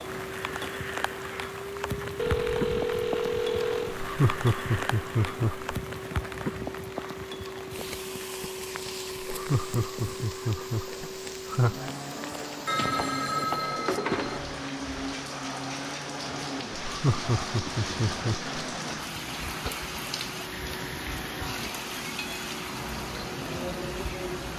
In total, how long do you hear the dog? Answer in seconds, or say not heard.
not heard.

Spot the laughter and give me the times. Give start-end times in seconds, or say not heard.
4.0-5.7, 9.3-11.9, 16.9-18.5.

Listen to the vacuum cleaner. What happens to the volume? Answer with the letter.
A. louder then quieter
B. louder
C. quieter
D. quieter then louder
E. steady
E.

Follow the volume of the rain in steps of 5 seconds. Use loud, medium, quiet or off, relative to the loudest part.
loud, loud, medium, loud, loud.